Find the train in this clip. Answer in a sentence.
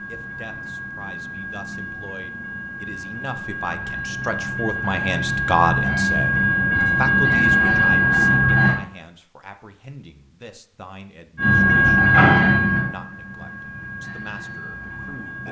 The train can be heard from 0.0 to 8.8 s and from 11.3 to 15.4 s.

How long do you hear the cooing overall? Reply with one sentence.
The cooing can't be heard in this clip.